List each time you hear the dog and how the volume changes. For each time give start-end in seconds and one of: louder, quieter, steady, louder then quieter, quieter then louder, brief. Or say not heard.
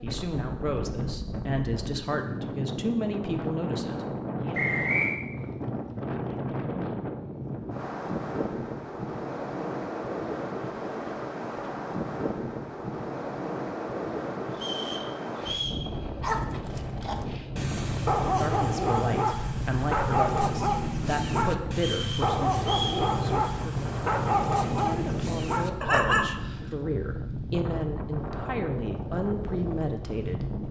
16.2-26.3 steady.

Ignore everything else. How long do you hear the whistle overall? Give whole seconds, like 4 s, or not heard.
3 s.